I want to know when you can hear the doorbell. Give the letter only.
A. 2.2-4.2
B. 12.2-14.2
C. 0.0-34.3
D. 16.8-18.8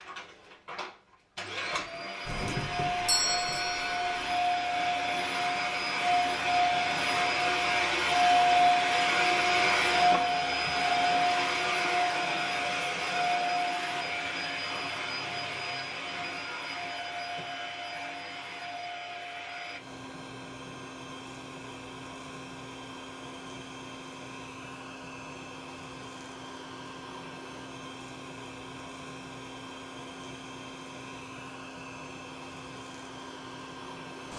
A.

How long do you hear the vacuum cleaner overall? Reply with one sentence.
The vacuum cleaner can be heard for 34 seconds in total.